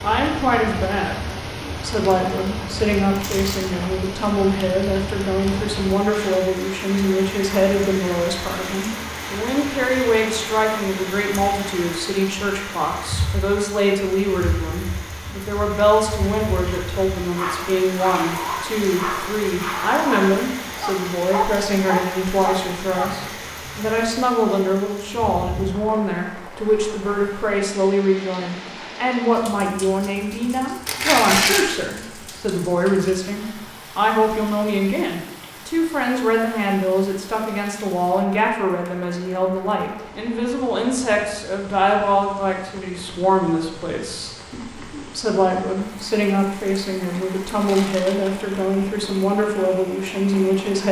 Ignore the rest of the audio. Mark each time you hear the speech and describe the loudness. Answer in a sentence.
The speech can be heard from 0.0 to 50.8 s, at a steady volume.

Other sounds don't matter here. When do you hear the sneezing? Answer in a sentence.
You can't hear the sneezing here.